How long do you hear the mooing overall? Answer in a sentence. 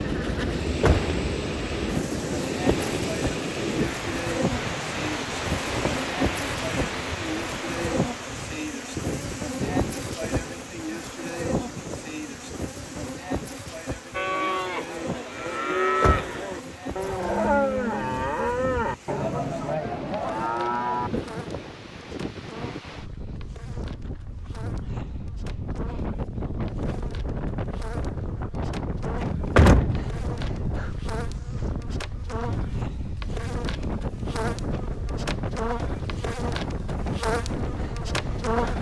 The mooing can be heard for 7 seconds in total.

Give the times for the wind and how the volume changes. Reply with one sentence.
You can hear the wind from 0.0 to 38.7 s, getting quieter then louder.